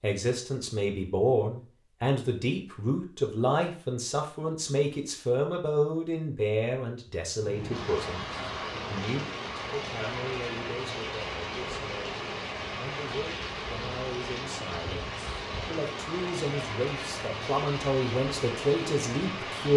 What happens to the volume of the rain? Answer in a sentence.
The loudness of the rain stays about the same.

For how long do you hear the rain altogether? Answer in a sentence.
You can hear the rain for 12 seconds altogether.